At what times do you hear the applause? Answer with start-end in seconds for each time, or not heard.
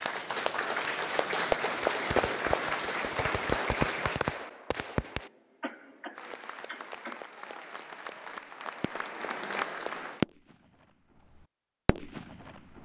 0.0-4.2, 6.2-10.2.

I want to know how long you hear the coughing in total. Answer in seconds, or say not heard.
2 s.